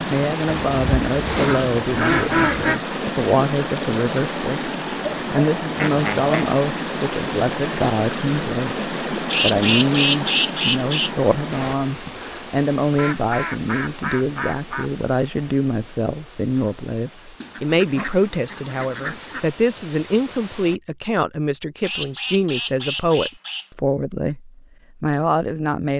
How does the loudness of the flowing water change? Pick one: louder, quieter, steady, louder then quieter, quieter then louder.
quieter.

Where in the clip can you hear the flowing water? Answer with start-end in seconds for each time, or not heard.
0.0-20.8.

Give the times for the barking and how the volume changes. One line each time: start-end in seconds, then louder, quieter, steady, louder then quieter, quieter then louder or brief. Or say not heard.
not heard.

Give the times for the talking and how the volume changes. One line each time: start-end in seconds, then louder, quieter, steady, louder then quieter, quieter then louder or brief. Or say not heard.
0.1-25.9 steady.